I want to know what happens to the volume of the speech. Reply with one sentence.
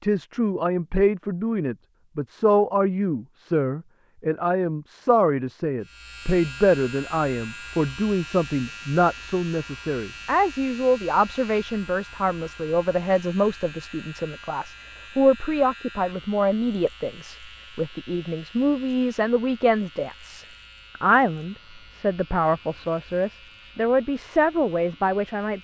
The volume of the speech stays about the same.